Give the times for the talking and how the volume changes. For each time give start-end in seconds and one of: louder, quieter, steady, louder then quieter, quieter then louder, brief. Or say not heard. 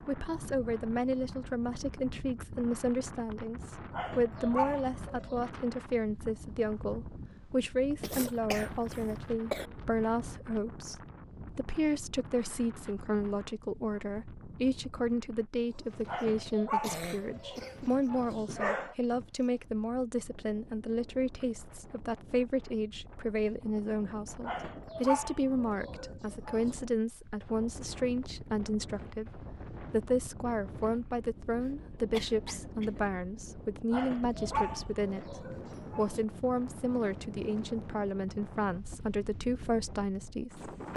0.1-40.9 steady.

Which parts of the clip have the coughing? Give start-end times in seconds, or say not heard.
8.0-9.7, 16.8-17.9, 31.6-33.0.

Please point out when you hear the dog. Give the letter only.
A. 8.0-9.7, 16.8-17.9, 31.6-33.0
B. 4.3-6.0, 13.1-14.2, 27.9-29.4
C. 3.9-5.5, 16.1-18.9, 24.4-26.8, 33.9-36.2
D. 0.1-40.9
C.